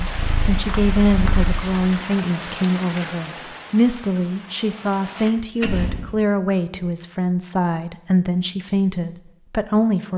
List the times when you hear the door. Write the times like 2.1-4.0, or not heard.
5.2-6.2.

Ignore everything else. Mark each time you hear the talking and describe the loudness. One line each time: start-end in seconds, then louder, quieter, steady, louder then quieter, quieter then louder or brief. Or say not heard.
0.0-10.1 steady.